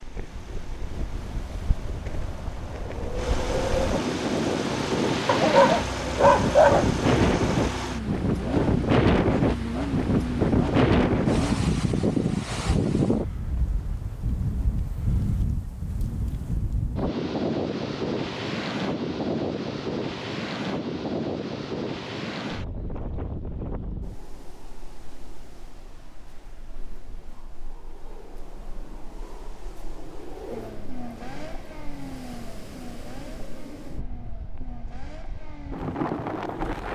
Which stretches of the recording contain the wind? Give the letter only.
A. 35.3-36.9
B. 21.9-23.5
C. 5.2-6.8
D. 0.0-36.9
D.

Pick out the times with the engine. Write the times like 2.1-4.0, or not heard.
0.0-11.6, 30.5-36.9.